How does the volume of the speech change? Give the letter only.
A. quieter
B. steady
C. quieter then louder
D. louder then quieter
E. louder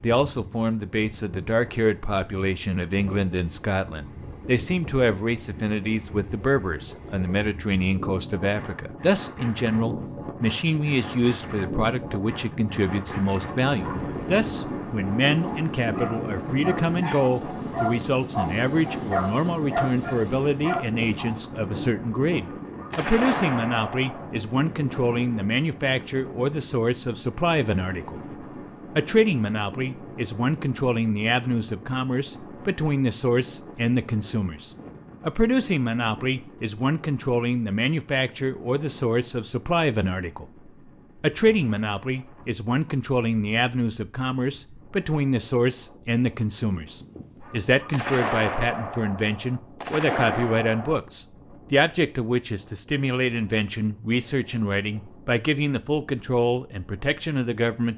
B.